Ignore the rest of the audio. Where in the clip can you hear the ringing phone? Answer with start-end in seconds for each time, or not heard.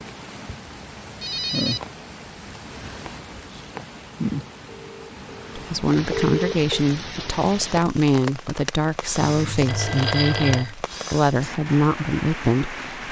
1.2-1.9, 4.8-6.8, 9.2-10.8.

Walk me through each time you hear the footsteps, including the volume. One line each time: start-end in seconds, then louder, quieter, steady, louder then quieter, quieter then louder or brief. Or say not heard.
not heard.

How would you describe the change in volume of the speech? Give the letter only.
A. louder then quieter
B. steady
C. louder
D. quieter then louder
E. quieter
B.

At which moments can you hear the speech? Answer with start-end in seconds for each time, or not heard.
5.5-12.8.